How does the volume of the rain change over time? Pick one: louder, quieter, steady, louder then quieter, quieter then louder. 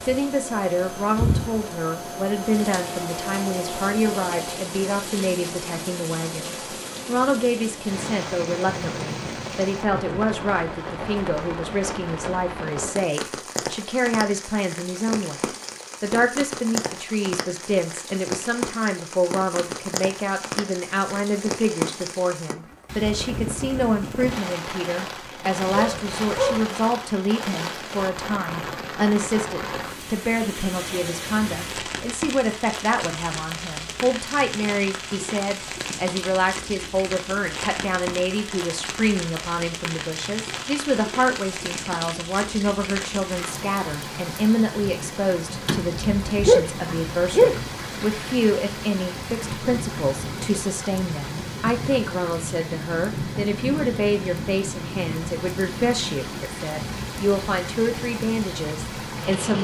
steady.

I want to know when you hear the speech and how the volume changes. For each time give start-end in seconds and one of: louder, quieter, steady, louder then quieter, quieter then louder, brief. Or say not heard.
0.0-59.5 steady.